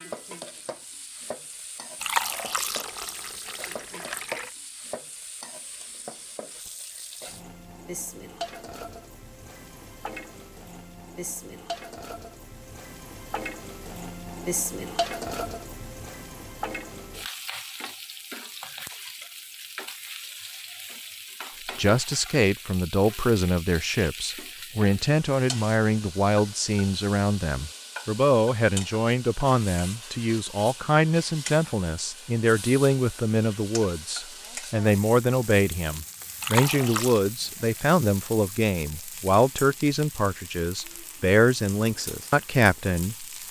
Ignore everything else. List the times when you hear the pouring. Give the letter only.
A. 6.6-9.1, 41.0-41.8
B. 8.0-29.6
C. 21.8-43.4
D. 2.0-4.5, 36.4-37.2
D.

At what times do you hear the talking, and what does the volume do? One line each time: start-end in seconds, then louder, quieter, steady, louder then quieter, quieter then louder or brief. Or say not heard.
21.8-43.4 steady.